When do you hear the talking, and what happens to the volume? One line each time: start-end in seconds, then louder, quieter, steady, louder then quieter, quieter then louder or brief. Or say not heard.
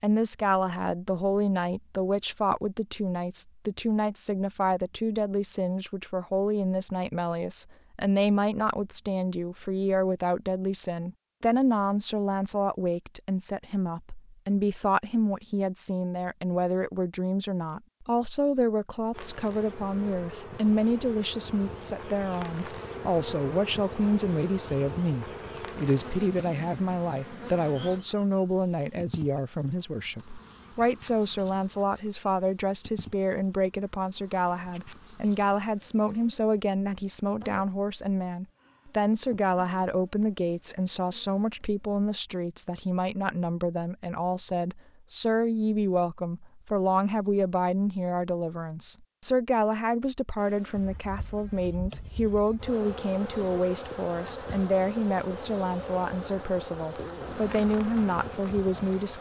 0.0-59.1 steady.